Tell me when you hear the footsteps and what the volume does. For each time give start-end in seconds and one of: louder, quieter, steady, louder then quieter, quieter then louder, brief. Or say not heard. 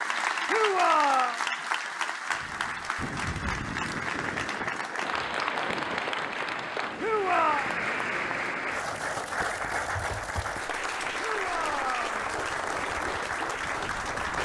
not heard.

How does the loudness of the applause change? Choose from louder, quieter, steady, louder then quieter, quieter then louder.
steady.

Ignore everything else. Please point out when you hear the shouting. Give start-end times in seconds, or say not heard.
0.5-1.4, 7.0-7.7, 11.2-12.2.